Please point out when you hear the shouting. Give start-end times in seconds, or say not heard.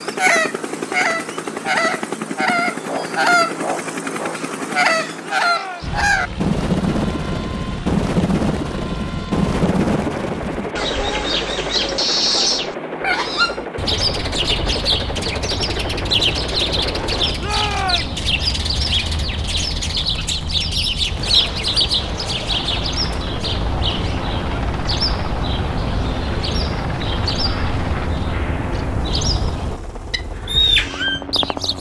5.2-6.0, 17.4-18.2.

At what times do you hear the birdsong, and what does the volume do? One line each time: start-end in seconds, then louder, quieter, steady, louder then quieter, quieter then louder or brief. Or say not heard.
0.0-31.7 steady.